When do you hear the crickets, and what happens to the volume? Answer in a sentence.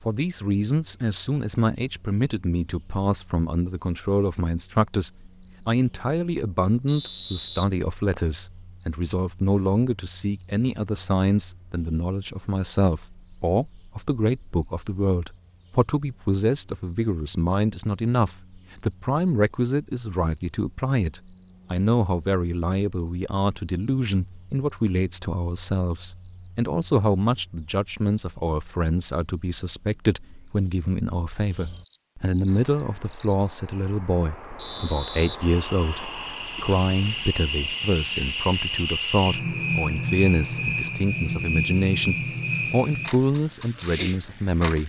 You can hear the crickets from 0.0 to 44.8 s, getting louder.